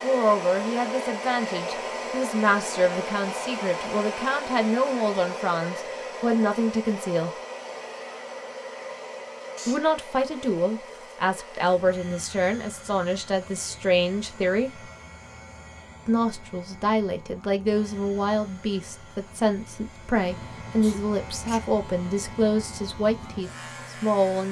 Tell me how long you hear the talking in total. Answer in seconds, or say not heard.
21 s.